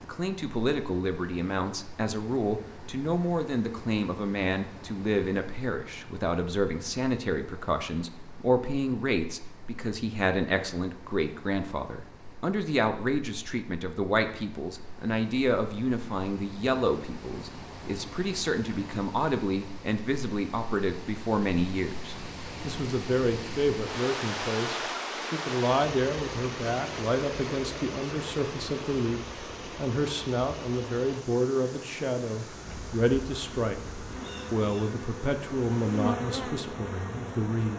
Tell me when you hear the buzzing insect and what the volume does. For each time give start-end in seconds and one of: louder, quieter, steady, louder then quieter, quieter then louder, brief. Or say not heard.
32.5-37.7 louder then quieter.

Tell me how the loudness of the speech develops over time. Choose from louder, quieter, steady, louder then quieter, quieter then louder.
steady.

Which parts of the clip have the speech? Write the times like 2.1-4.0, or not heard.
0.0-37.7.